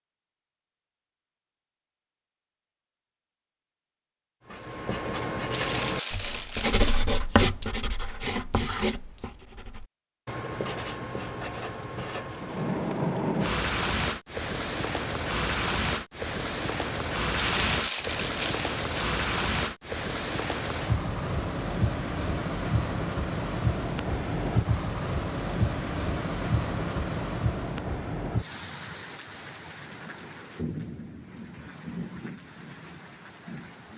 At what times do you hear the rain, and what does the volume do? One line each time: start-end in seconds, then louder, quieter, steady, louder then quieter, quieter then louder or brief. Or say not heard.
12.3-33.9 quieter.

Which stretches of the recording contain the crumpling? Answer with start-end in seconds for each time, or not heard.
5.5-7.0, 17.4-19.2.